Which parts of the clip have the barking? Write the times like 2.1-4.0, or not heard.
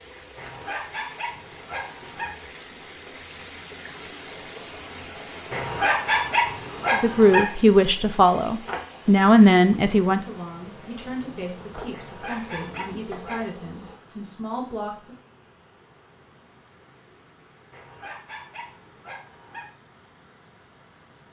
0.3-2.3, 5.5-7.5, 11.9-13.5, 17.7-19.6.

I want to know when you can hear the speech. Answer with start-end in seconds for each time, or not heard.
6.9-15.2.